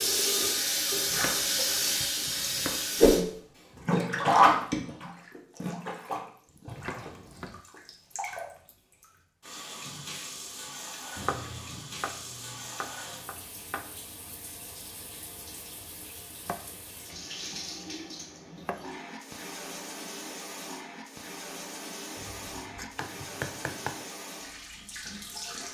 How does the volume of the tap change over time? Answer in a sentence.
The loudness of the tap goes down.